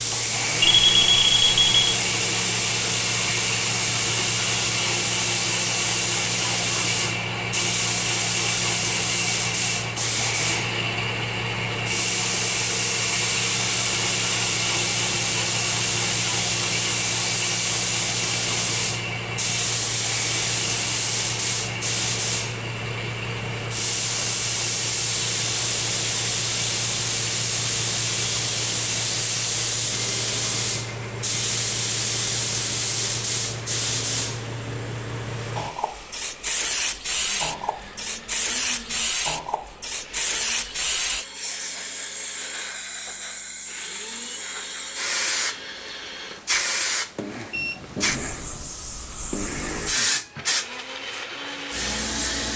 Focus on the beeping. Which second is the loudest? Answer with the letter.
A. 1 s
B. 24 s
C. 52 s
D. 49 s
A.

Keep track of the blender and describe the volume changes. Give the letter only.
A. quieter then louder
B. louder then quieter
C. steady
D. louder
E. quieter
A.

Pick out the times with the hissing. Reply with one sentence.
The hissing can be heard from 0.0 to 52.5 s.